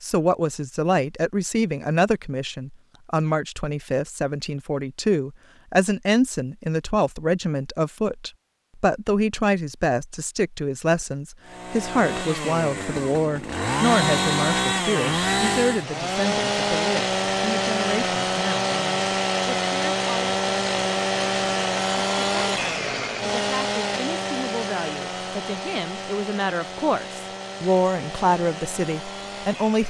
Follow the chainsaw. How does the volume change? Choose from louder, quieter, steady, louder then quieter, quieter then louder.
quieter.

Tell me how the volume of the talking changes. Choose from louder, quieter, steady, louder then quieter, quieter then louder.
quieter then louder.